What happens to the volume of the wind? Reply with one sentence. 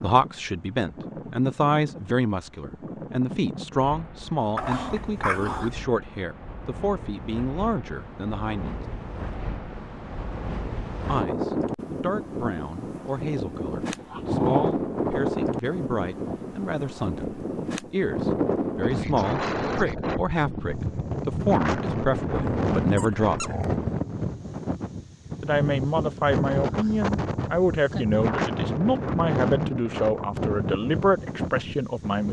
The volume of the wind goes up.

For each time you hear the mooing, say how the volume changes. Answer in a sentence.
The mooing can't be heard in this clip.